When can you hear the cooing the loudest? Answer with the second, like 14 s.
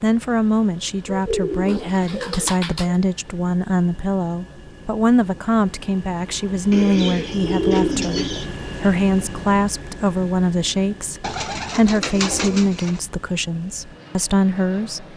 8 s.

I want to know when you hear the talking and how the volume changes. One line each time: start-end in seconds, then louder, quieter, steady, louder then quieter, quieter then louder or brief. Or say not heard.
0.0-15.1 steady.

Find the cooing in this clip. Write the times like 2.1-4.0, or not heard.
1.1-3.0, 6.7-8.4, 11.2-13.0.